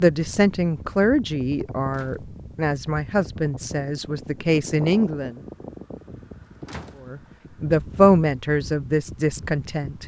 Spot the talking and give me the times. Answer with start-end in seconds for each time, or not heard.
0.0-5.3, 7.0-10.0.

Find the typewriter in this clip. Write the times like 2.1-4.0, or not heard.
not heard.